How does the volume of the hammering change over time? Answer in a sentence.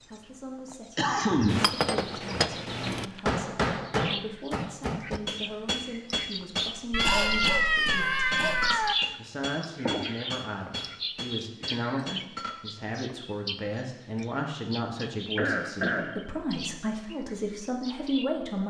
The loudness of the hammering goes down.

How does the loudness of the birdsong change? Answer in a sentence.
The loudness of the birdsong goes up, then down.